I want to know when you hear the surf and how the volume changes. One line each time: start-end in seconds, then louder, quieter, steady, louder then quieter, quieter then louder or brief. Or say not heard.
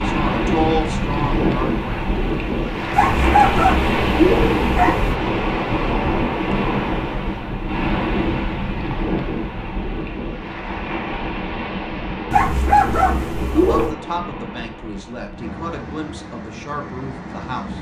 0.0-17.7 quieter.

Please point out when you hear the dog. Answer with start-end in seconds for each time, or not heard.
2.9-5.2, 12.3-13.9.